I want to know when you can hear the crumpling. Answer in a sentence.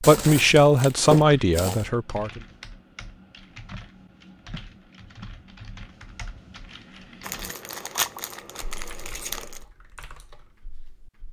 You can hear the crumpling from 0.0 to 1.9 s and from 7.2 to 9.6 s.